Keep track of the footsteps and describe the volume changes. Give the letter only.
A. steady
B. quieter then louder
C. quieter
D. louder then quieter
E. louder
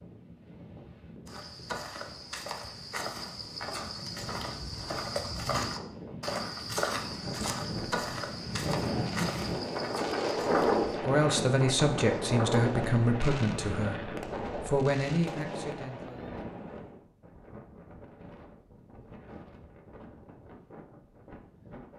D.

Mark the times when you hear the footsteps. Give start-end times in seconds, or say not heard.
1.2-11.0.